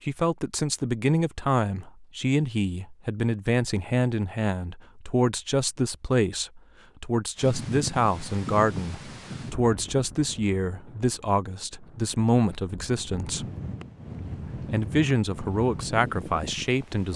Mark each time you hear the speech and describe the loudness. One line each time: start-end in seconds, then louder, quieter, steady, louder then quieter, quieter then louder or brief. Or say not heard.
0.1-13.4 steady
14.7-17.1 brief.